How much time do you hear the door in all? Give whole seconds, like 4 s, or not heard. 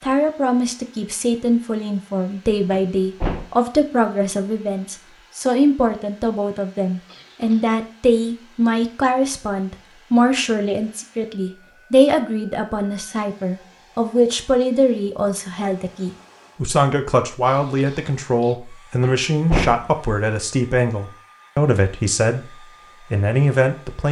2 s.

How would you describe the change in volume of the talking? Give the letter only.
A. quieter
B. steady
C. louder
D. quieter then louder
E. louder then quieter
B.